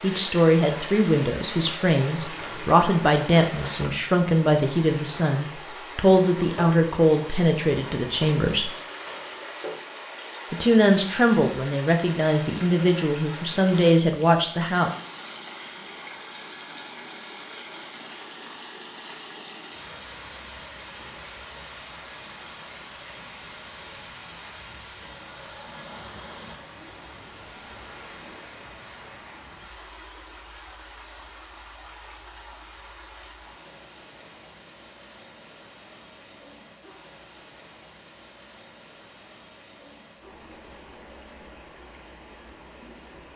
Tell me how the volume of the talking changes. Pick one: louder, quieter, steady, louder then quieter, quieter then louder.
steady.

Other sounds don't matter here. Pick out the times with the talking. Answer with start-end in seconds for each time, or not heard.
0.0-8.7, 10.5-14.9.